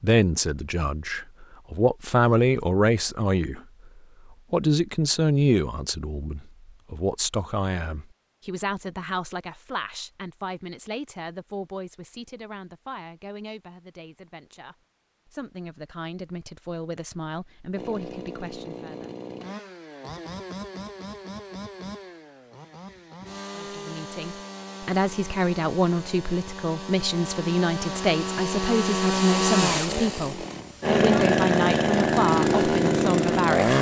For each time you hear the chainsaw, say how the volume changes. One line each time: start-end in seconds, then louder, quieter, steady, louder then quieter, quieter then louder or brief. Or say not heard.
17.8-33.7 louder.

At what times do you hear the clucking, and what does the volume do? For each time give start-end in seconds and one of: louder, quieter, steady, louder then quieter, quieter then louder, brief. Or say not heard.
not heard.